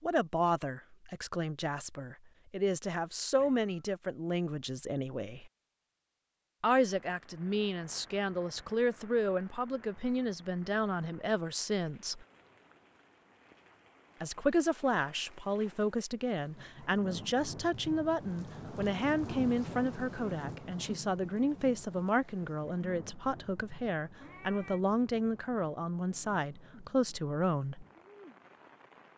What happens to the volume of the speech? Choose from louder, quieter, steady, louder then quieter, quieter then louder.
steady.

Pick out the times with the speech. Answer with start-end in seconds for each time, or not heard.
0.0-5.5, 6.6-12.2, 14.2-27.9.